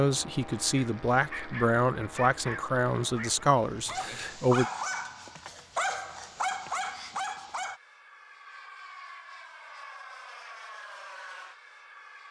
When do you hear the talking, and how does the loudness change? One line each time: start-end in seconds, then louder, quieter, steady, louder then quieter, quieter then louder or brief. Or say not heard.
0.0-4.7 steady.